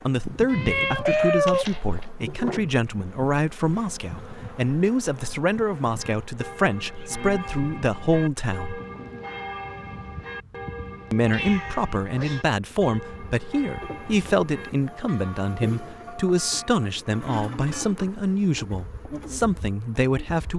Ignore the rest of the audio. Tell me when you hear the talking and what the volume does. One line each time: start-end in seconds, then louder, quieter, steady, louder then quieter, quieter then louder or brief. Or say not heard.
0.0-8.8 steady
11.1-20.5 steady.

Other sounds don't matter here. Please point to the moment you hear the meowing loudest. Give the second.
1 s.